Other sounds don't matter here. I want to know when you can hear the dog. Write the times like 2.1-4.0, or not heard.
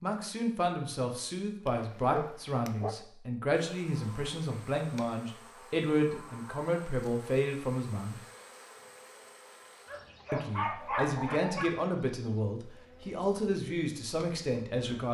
1.6-3.0, 9.8-11.8.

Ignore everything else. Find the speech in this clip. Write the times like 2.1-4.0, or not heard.
0.0-8.2, 10.3-15.0.